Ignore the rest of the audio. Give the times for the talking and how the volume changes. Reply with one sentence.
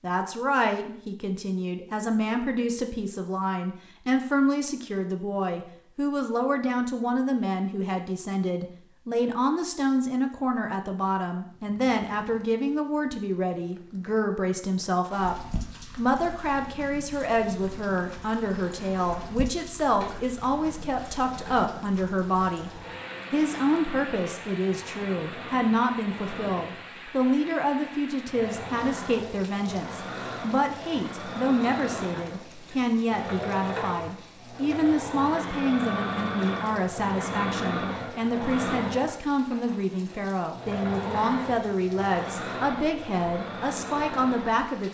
The talking can be heard from 0.0 to 22.7 s, at a steady volume; and from 23.3 to 44.8 s, at a steady volume.